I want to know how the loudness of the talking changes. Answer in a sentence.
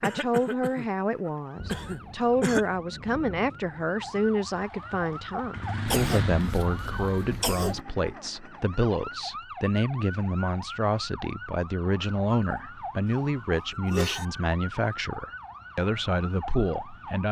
The volume of the talking stays about the same.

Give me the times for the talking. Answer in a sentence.
You can hear the talking from 0.0 to 17.2 s.